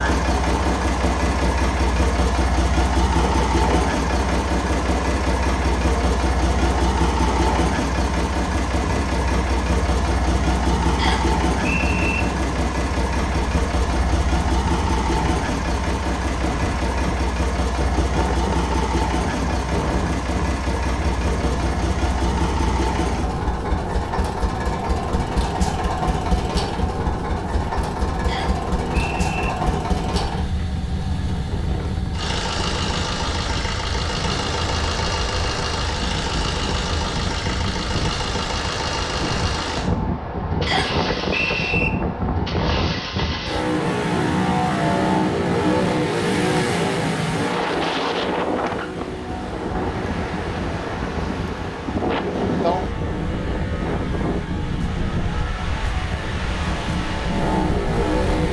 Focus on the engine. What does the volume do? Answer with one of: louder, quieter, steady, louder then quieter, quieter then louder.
quieter.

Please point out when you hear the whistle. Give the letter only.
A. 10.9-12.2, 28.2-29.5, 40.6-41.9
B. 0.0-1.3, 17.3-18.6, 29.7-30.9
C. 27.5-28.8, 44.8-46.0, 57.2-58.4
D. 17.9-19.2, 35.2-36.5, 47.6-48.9
A.